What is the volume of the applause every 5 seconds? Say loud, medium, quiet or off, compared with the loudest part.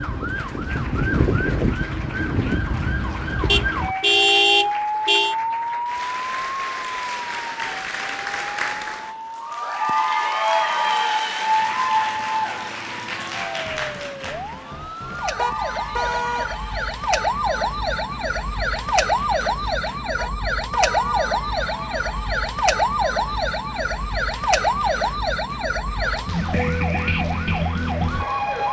quiet, medium, loud, quiet, quiet, quiet.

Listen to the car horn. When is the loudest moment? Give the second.
4 s.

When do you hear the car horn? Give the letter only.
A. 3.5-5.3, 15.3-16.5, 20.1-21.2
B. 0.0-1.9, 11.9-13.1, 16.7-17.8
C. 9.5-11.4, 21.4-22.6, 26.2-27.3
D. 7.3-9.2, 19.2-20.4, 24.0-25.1
A.